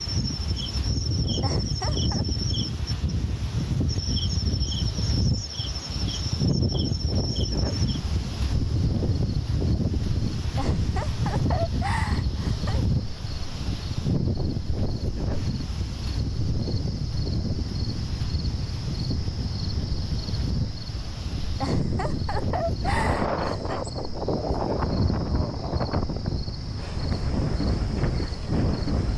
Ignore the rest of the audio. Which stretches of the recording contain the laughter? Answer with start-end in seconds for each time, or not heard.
1.4-2.2, 10.6-12.8, 21.6-23.9.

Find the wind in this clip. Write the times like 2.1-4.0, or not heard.
0.0-29.1.